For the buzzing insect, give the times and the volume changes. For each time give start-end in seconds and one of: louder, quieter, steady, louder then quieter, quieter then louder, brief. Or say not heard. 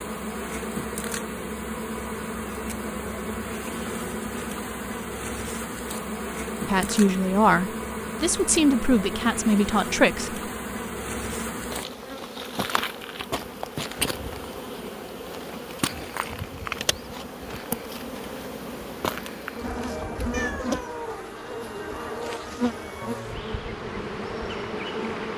0.0-25.3 steady.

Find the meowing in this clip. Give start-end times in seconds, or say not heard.
20.3-21.3.